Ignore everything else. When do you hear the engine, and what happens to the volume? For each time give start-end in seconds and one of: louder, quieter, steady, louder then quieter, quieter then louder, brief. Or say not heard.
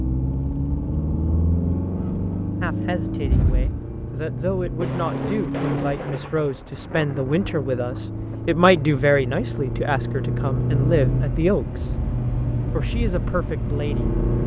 0.0-14.4 quieter then louder.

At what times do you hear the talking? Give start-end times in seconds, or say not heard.
2.6-11.9, 12.7-14.1.